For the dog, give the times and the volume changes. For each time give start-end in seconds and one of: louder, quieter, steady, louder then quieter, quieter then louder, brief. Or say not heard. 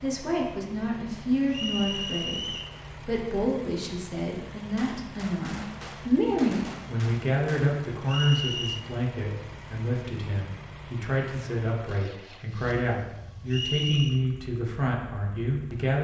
not heard.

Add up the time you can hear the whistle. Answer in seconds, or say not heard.
3 s.